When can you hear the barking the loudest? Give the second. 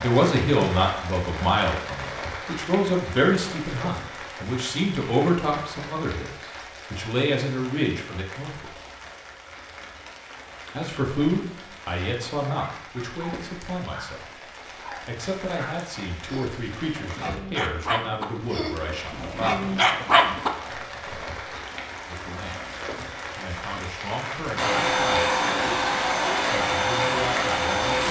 20 s.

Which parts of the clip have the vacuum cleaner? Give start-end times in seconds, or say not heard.
24.6-28.0.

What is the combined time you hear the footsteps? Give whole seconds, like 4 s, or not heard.
not heard.